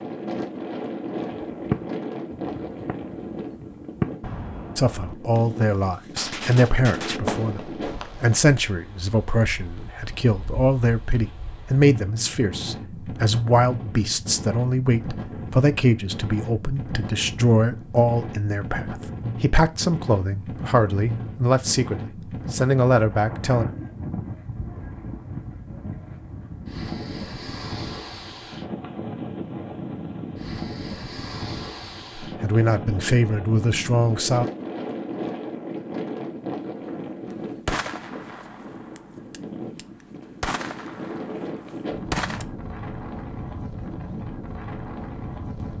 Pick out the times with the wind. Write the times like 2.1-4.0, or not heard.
0.0-45.7.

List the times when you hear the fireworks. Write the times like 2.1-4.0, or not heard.
1.5-8.4, 36.8-42.5.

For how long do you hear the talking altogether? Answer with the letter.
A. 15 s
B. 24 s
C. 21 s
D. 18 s
C.